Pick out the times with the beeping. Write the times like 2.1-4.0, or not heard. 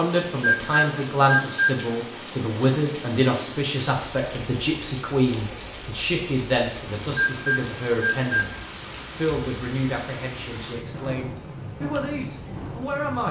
0.4-1.8, 7.2-8.4.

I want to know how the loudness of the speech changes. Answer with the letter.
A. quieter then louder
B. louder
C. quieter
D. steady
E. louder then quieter
C.